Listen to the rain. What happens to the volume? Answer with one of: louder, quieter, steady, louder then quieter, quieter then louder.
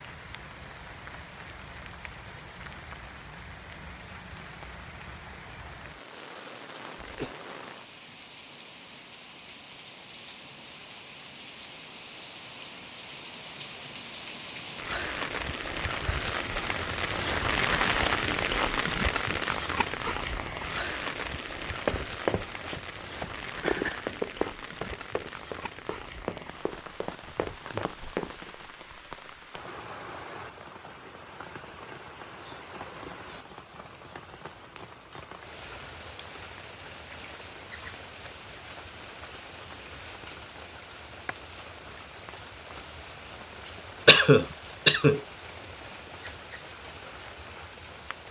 louder then quieter.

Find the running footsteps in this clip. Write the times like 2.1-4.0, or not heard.
21.6-28.6.